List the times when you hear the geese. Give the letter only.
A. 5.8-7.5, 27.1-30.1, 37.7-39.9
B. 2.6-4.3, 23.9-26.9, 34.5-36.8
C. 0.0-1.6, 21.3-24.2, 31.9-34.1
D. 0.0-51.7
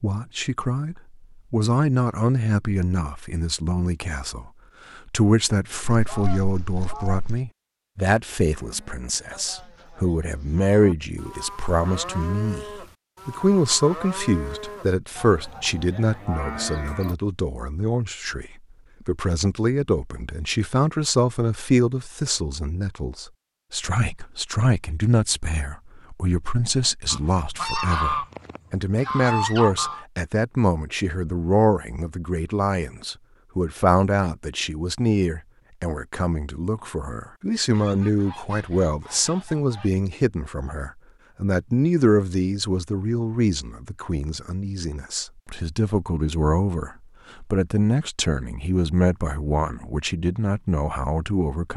A.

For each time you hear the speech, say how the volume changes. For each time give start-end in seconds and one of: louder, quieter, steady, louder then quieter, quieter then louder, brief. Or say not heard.
0.0-51.7 steady.